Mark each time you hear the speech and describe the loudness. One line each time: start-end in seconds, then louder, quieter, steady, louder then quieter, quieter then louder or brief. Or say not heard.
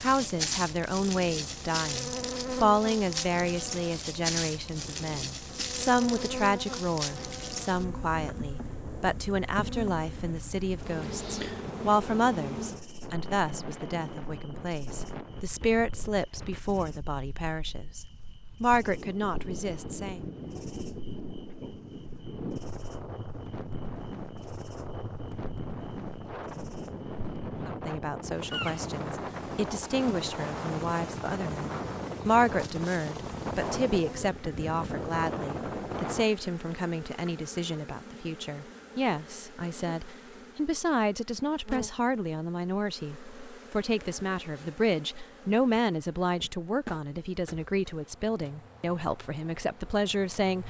0.0-20.2 steady
27.6-50.6 steady.